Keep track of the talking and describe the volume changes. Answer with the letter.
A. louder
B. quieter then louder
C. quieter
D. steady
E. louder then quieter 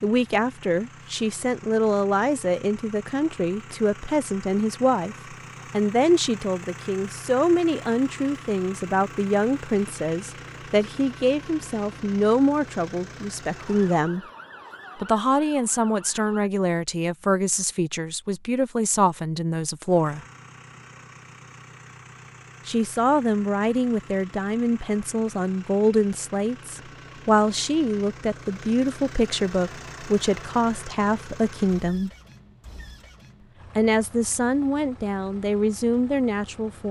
D.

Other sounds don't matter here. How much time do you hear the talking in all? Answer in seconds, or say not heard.
32 s.